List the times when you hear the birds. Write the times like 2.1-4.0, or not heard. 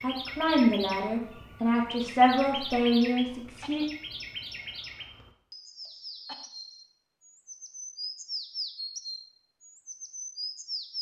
0.0-10.9.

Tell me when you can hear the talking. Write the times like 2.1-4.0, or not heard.
0.0-3.9.